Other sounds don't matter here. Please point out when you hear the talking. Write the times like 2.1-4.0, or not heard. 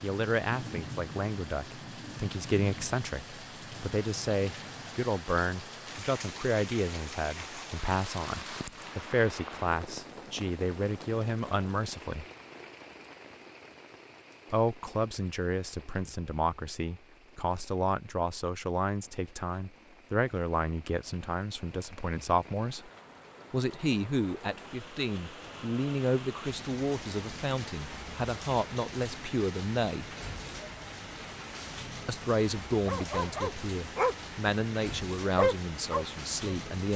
0.0-12.2, 14.5-22.9, 23.5-30.1, 32.0-36.9.